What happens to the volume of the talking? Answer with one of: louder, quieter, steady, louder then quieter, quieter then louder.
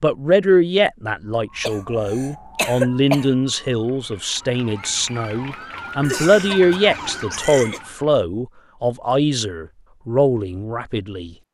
steady.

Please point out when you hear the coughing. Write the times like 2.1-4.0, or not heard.
1.6-3.3, 6.0-7.8.